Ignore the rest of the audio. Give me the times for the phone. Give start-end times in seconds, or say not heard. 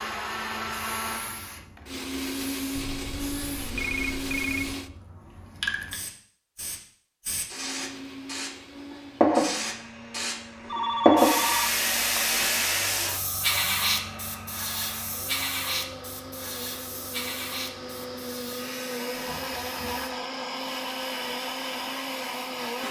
2.8-4.8, 10.7-12.2, 19.1-20.1.